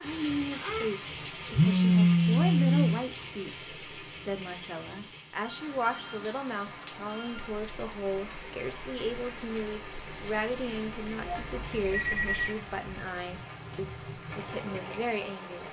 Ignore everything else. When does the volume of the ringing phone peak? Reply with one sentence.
The loudest moment of the ringing phone is at 2 seconds.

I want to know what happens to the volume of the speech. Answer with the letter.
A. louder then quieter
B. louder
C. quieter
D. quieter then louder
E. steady
E.